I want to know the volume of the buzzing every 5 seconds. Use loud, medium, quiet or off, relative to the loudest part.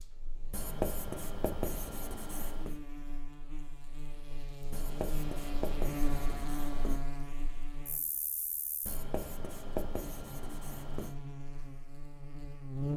medium, loud, loud.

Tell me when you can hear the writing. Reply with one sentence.
The writing can be heard from 0.5 to 2.8 s, from 4.7 to 7.0 s and from 8.8 to 11.2 s.